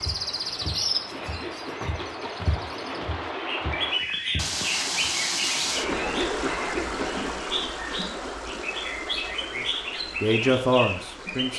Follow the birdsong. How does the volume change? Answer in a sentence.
The loudness of the birdsong stays about the same.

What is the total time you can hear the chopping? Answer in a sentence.
The chopping can't be heard in this clip.